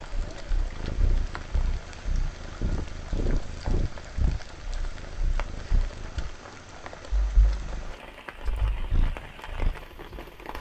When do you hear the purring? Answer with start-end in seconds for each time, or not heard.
0.0-10.3.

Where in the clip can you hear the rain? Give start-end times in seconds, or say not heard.
0.0-10.5.